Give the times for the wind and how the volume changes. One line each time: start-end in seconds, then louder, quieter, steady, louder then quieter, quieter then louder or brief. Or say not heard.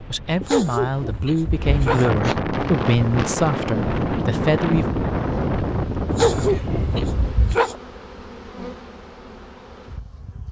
0.0-7.4 louder.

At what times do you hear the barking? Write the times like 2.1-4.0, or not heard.
0.4-2.4, 6.1-7.8.